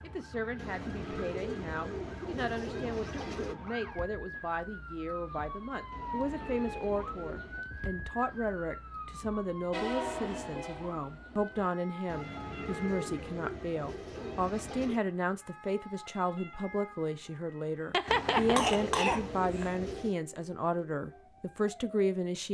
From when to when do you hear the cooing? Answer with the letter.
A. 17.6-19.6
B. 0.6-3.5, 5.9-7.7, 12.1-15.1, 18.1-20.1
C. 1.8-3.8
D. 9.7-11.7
B.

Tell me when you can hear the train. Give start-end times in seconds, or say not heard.
9.7-11.7.